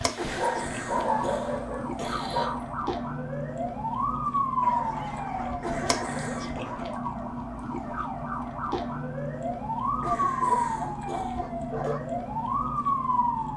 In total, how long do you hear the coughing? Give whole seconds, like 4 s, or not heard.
5 s.